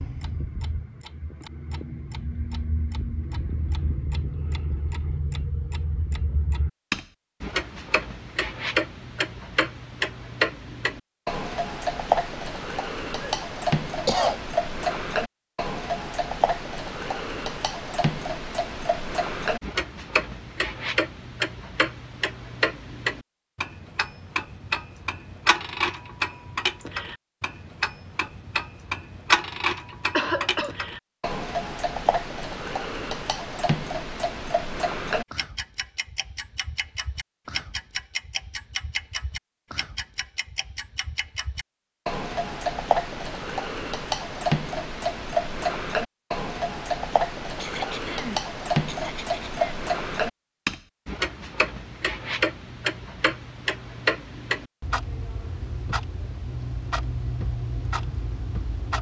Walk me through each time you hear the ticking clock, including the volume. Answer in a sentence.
The ticking clock can be heard from 0.0 to 58.9 s, at a steady volume.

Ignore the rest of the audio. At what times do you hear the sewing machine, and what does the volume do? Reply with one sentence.
The sewing machine can't be heard in this clip.